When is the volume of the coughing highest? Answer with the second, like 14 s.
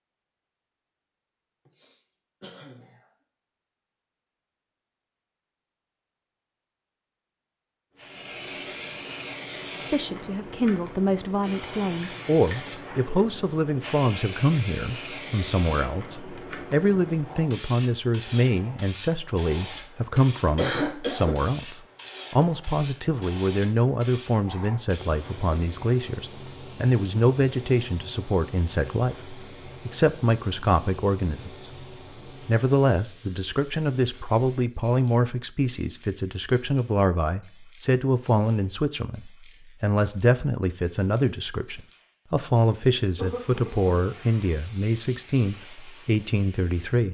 21 s.